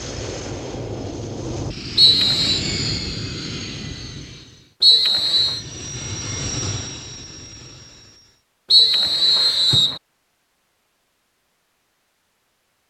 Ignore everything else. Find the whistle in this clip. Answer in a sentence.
The whistle can be heard from 1.9 to 2.6 s, from 4.8 to 5.6 s and from 8.7 to 10.0 s.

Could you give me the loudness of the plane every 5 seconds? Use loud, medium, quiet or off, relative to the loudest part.
loud, loud, off.